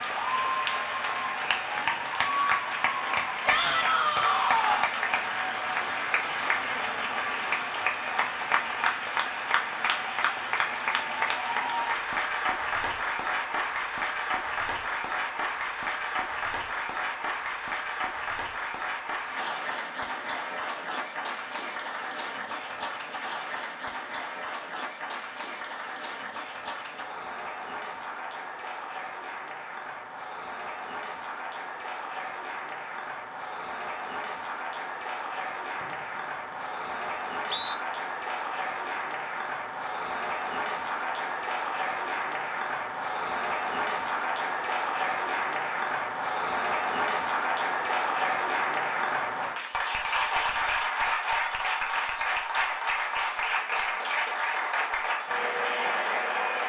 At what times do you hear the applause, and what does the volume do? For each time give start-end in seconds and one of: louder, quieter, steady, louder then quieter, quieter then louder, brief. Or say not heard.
0.0-56.6 quieter then louder.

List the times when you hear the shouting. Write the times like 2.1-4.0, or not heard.
3.5-4.9.